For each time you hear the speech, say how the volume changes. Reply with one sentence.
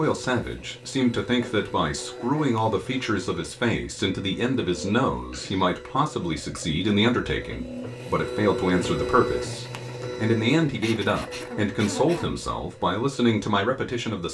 The speech can be heard from 0.0 to 14.2 s, at a steady volume.